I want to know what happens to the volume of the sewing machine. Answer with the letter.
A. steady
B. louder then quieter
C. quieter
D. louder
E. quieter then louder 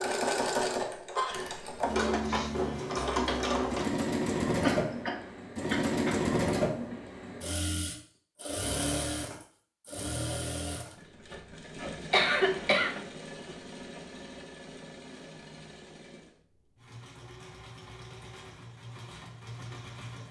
C.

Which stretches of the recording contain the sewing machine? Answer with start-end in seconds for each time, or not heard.
0.0-20.2.